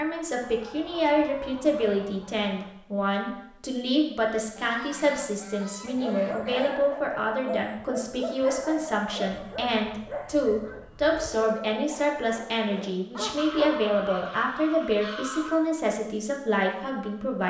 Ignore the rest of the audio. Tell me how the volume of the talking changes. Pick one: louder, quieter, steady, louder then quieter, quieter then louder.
steady.